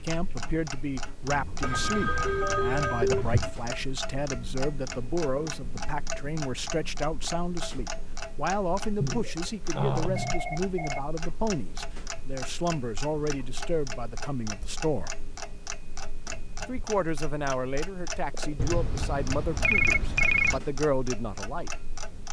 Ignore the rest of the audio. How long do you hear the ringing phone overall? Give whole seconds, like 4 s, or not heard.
6 s.